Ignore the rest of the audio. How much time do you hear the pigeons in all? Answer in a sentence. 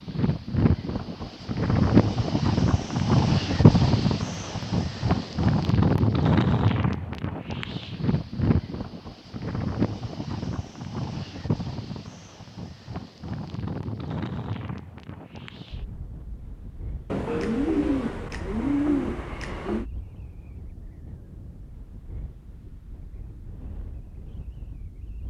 You can hear the pigeons for 3 seconds altogether.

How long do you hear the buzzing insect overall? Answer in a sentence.
You can't hear the buzzing insect here.